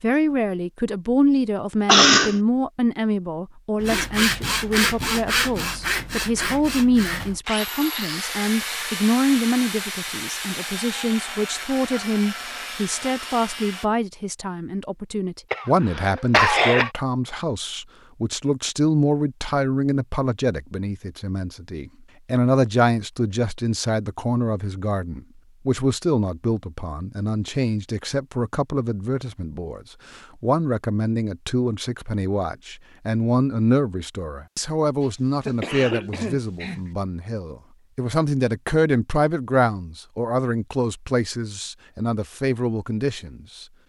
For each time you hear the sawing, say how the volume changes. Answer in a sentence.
The sawing can be heard from 3.8 to 13.8 s, getting quieter.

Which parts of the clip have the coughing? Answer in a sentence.
You can hear the coughing from 1.9 to 2.4 s, from 15.5 to 16.9 s and from 35.0 to 36.9 s.